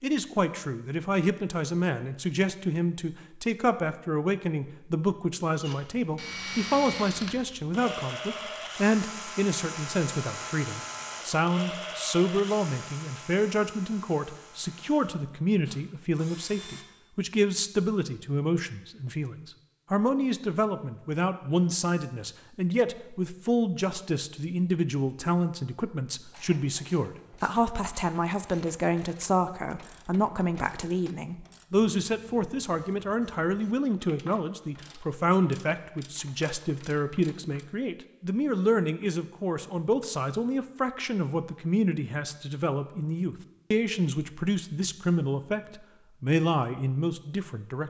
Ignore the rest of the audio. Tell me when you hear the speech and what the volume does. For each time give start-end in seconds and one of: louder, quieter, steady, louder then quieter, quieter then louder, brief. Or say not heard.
0.0-47.8 steady.